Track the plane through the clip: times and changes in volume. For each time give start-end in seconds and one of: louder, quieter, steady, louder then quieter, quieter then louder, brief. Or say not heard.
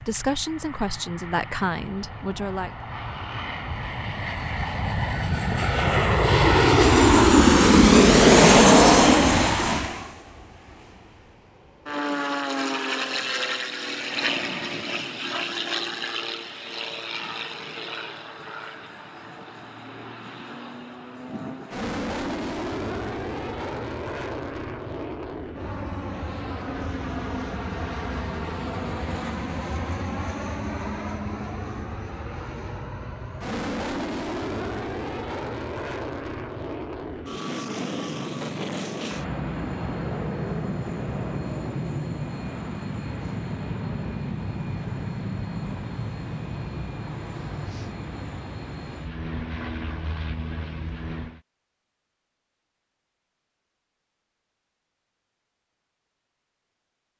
0.0-51.4 quieter.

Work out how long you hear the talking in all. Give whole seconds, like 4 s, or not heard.
3 s.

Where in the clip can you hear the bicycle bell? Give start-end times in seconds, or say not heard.
not heard.